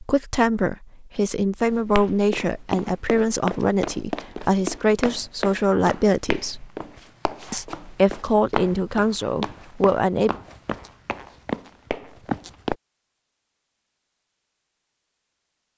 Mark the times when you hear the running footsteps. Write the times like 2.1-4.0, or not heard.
1.6-12.8.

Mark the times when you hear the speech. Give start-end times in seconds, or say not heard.
0.0-6.7, 7.5-10.3.